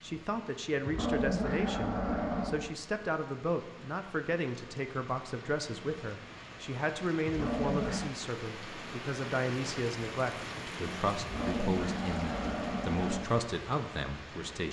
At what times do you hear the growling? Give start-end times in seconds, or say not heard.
0.8-2.6, 7.2-8.1, 11.2-13.2.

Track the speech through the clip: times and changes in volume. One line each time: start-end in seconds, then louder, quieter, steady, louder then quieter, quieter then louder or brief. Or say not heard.
0.0-14.6 steady.